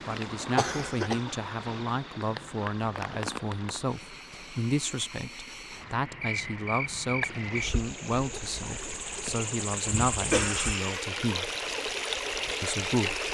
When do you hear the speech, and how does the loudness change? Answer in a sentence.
The speech can be heard from 0.1 to 11.5 s, at a steady volume; and briefly from 12.6 to 13.2 s.